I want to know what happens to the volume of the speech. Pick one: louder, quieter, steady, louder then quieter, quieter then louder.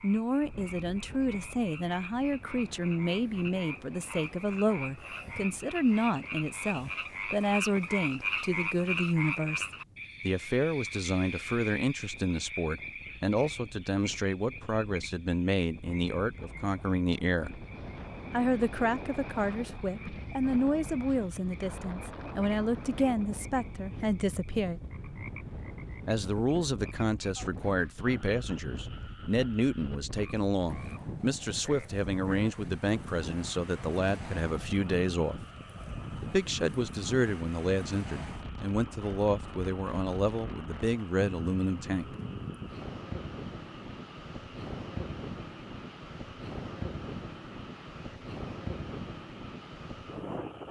steady.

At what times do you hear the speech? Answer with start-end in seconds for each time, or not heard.
0.0-17.6, 18.3-24.8, 26.1-35.5, 36.2-42.1.